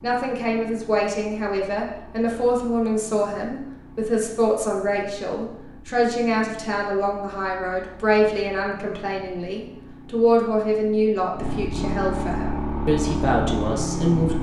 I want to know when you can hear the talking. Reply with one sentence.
You can hear the talking from 0.0 to 14.3 s.